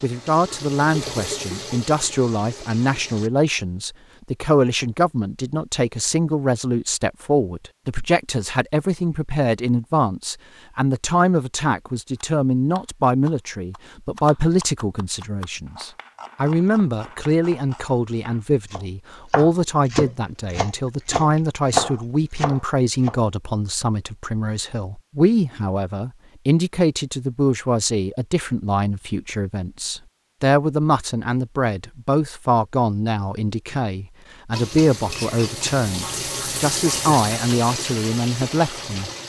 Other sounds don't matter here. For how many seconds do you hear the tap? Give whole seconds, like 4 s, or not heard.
8 s.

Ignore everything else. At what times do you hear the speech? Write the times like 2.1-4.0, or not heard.
0.0-39.1.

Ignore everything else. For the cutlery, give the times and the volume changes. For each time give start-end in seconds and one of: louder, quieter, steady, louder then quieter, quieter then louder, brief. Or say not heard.
not heard.